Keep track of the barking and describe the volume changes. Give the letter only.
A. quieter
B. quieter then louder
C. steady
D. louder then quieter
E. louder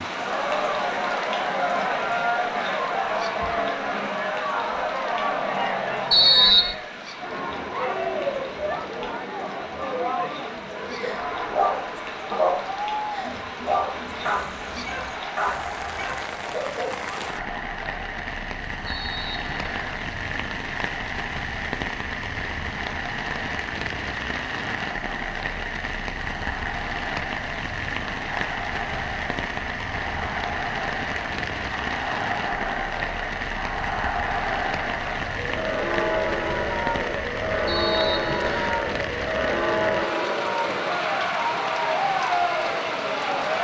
A.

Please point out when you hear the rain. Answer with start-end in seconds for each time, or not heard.
0.0-43.5.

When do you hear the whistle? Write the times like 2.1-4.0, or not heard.
6.1-6.8, 18.9-20.0, 37.6-38.8.